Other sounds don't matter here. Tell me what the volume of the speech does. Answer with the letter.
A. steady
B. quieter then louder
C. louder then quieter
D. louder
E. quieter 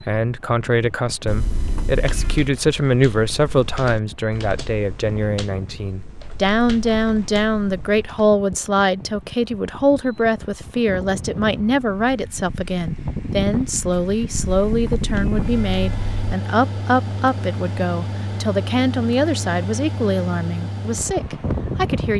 A.